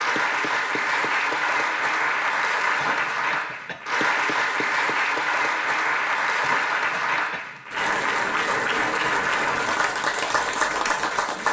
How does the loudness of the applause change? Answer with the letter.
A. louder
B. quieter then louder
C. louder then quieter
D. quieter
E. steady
E.